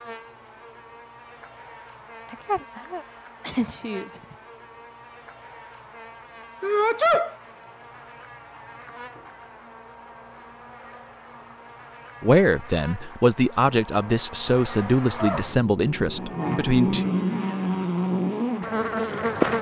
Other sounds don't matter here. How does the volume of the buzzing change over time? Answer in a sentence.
The loudness of the buzzing goes up.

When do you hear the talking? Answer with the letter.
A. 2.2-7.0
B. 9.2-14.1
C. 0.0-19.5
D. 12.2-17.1
D.